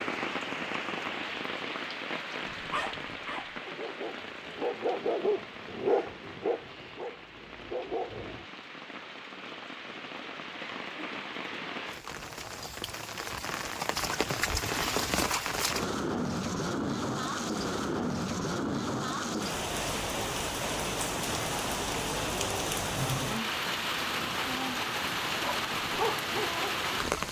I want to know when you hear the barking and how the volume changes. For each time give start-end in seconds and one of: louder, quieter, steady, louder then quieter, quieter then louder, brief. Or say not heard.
2.5-8.4 louder then quieter
25.3-27.2 brief.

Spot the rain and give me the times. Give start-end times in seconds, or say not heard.
0.0-27.2.